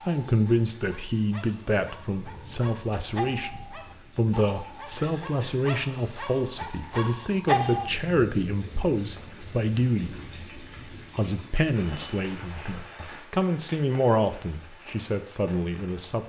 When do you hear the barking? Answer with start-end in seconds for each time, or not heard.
0.0-7.9.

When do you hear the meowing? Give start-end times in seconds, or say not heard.
not heard.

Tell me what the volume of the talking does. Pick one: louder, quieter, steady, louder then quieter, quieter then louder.
steady.